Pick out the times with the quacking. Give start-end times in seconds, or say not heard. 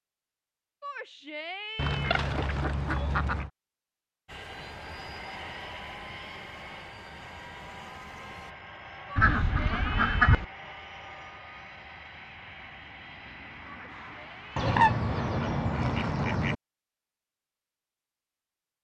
1.8-3.5, 9.2-10.4, 14.6-16.6.